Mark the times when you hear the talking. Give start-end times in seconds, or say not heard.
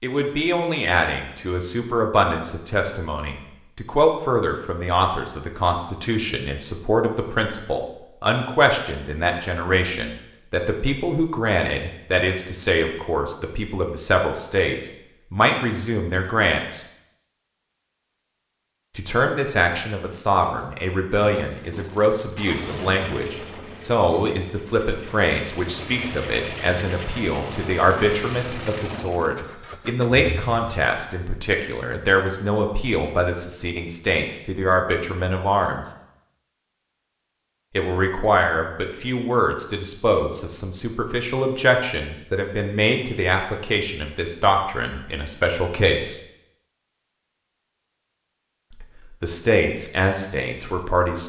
0.0-16.8, 18.9-35.9, 37.8-46.2, 48.8-51.2.